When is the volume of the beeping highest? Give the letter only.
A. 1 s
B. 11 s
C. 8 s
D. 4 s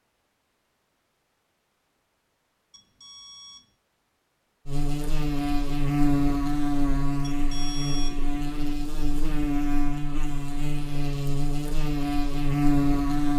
C.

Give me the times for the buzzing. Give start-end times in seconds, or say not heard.
4.7-13.3.